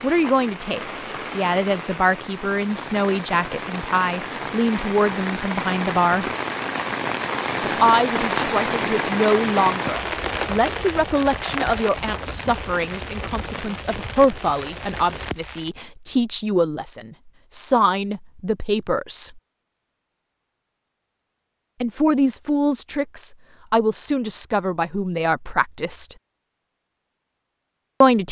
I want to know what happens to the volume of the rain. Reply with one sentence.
The volume of the rain goes up, then down.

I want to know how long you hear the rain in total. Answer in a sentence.
You can hear the rain for 16 seconds altogether.